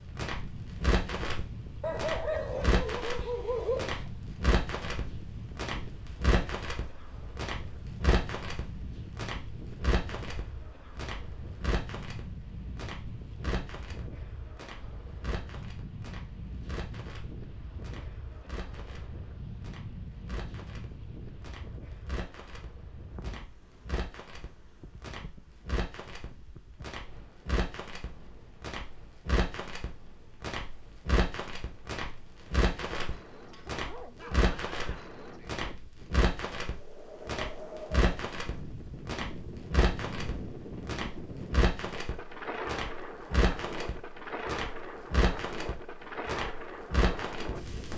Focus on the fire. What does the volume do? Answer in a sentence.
The loudness of the fire goes down, then up.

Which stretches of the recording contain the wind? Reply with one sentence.
You can hear the wind from 0.0 to 47.9 s.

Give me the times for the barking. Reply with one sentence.
You can hear the barking from 1.8 to 4.1 s and from 33.5 to 35.1 s.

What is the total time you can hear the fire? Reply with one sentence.
You can hear the fire for 48 seconds altogether.